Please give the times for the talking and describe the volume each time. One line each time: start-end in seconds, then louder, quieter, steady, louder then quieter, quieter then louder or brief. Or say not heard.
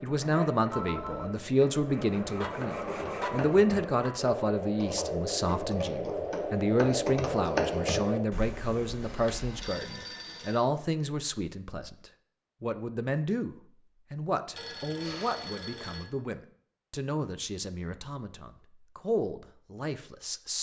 0.0-20.5 quieter.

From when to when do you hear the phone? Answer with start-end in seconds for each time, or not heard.
0.7-1.4, 9.0-10.7, 14.5-16.1.